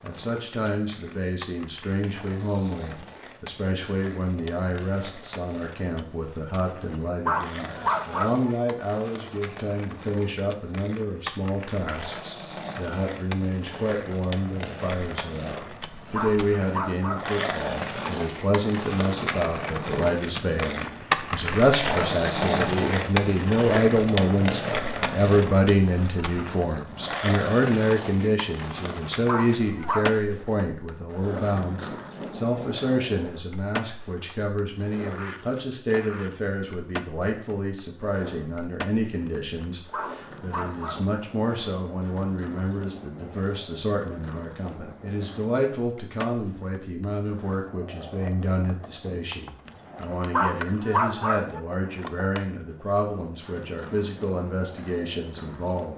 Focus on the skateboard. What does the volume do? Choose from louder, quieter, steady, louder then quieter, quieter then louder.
louder then quieter.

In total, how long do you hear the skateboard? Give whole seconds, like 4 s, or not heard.
56 s.